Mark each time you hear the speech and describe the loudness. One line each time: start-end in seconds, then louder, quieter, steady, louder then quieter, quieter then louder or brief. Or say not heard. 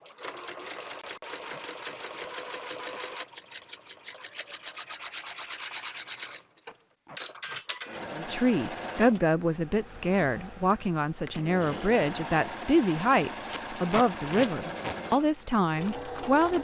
8.1-16.5 steady.